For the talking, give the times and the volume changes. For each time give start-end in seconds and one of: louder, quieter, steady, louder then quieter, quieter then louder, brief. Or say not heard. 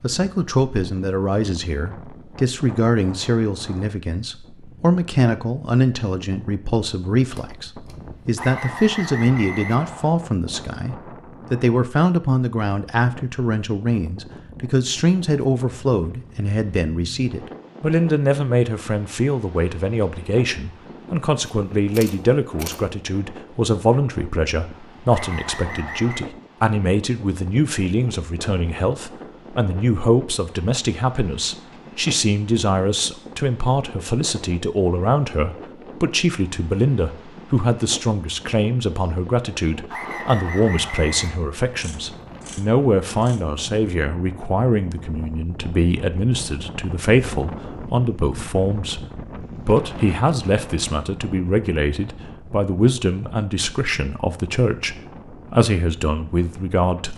0.0-49.0 steady
49.6-57.1 steady.